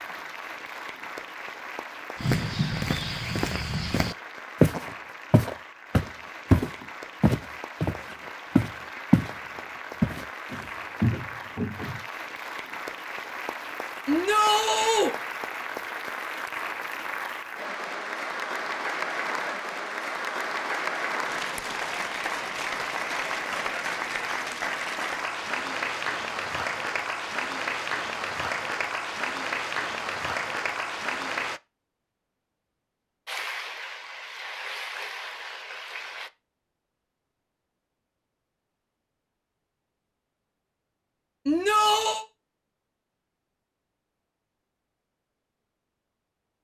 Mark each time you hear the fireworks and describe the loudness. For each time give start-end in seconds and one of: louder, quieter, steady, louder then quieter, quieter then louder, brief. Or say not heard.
not heard.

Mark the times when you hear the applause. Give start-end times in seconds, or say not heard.
0.0-31.6, 33.2-36.3.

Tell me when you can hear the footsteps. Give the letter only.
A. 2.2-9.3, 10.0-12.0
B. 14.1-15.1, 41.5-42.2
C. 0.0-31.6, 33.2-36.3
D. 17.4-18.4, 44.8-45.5
A.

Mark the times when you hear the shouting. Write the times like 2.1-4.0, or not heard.
14.1-15.1, 41.5-42.2.